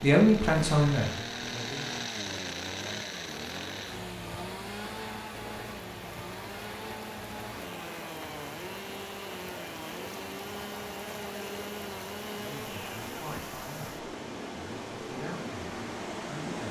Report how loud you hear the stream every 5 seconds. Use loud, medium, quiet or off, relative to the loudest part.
medium, medium, loud, loud.